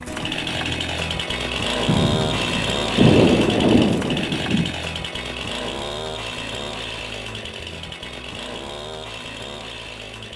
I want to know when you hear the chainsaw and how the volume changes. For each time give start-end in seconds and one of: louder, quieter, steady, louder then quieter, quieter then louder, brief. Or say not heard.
0.0-10.3 quieter.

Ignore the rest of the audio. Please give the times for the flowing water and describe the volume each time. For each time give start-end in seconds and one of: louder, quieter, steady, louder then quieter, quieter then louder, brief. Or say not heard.
not heard.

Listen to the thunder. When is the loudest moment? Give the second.
3 s.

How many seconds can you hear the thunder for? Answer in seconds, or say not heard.
3 s.